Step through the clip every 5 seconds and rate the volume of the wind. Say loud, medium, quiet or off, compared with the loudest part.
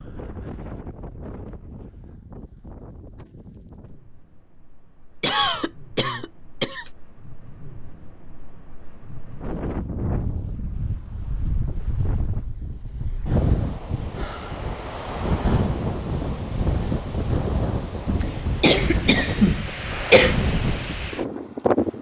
quiet, quiet, medium, loud, loud.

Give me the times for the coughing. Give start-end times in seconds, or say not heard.
5.2-6.8, 18.2-20.4.